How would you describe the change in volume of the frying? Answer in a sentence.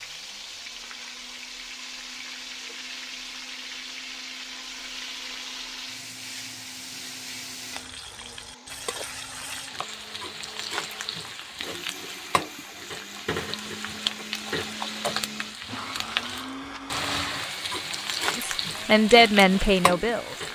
The loudness of the frying goes up.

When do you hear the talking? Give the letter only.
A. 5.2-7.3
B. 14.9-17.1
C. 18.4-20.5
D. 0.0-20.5
C.